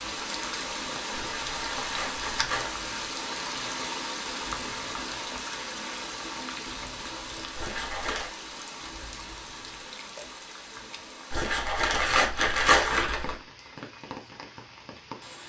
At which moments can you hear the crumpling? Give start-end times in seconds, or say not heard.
1.1-2.8, 7.5-8.3, 11.3-13.3.